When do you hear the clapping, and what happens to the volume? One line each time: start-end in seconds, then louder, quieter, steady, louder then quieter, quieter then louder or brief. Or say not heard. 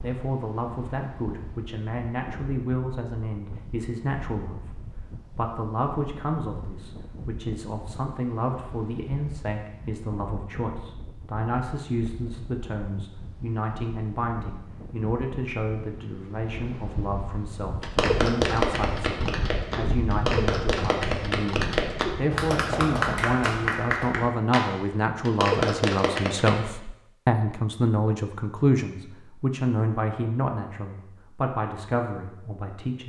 17.8-26.6 steady.